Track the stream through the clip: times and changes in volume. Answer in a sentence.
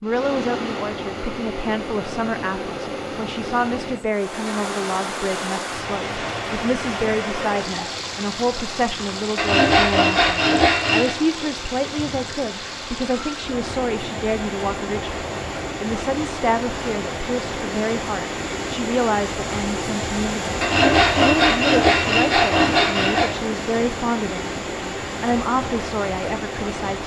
The stream can be heard from 0.0 to 27.0 s, at a steady volume.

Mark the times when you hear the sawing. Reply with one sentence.
You can hear the sawing from 9.3 to 11.2 s and from 20.6 to 23.2 s.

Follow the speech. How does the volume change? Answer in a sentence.
The volume of the speech stays about the same.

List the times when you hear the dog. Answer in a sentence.
The dog can't be heard in this clip.